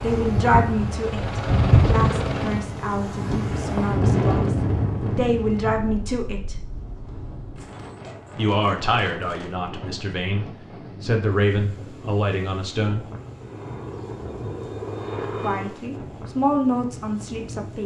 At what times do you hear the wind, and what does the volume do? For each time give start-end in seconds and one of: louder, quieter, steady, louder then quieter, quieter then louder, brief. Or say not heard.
0.0-17.8 quieter.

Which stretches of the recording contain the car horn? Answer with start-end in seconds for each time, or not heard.
not heard.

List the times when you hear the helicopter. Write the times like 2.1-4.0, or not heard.
0.0-2.7, 13.3-15.8.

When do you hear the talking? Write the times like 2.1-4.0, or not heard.
0.0-6.5, 8.3-13.1, 15.4-17.8.